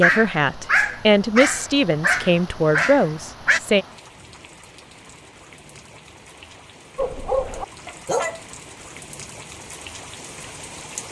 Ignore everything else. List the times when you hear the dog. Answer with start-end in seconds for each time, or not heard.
0.0-3.6, 7.0-8.4.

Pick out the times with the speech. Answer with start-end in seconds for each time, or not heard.
0.0-3.9.